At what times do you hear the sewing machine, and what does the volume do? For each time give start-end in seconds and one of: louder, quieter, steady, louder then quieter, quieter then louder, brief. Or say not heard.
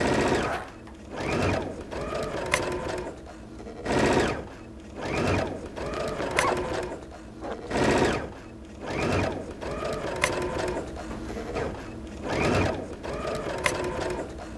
0.0-14.5 steady.